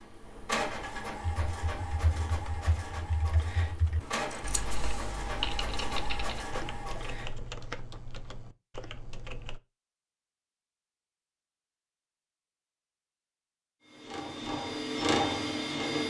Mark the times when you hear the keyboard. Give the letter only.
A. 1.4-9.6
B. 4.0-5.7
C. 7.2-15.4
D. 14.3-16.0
A.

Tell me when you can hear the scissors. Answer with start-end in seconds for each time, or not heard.
4.0-5.7.